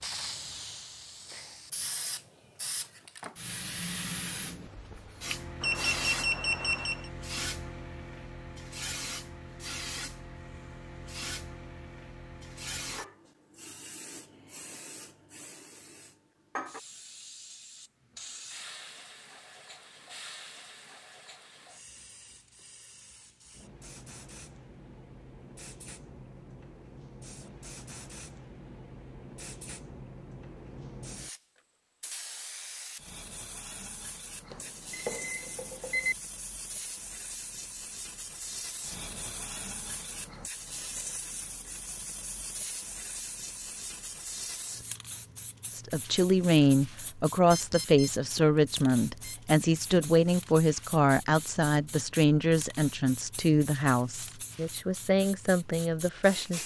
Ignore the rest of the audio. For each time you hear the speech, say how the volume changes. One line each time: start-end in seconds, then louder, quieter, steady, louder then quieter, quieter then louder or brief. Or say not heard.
45.7-56.6 quieter.